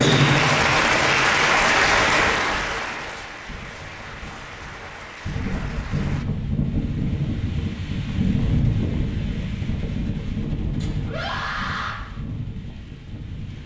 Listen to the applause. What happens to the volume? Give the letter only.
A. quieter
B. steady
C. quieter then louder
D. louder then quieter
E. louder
A.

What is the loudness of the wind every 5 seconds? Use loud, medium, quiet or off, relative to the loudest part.
quiet, loud, medium.